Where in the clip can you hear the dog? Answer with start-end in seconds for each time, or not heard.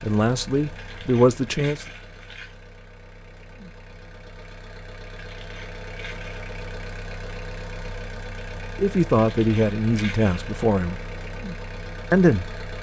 not heard.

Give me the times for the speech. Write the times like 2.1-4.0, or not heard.
0.0-1.9, 8.8-11.0, 12.1-12.6.